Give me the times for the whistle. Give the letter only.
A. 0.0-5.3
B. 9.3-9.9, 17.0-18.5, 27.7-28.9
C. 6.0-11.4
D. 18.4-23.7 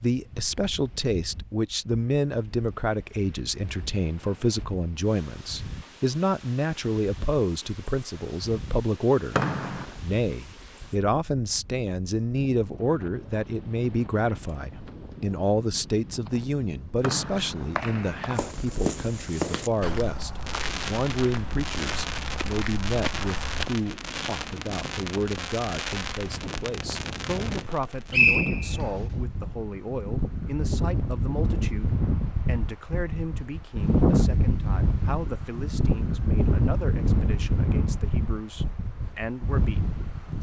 B.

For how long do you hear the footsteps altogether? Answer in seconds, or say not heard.
5 s.